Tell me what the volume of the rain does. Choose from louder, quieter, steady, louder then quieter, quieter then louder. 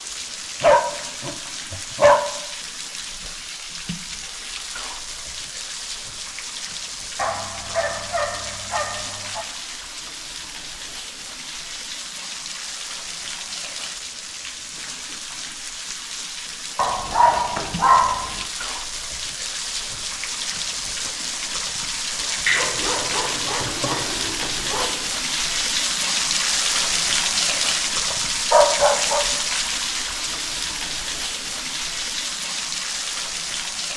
louder.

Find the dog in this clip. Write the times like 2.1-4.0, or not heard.
0.6-2.2, 7.2-9.4, 16.8-18.4, 22.4-24.9, 28.1-29.2.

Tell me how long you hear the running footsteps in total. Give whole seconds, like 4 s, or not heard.
not heard.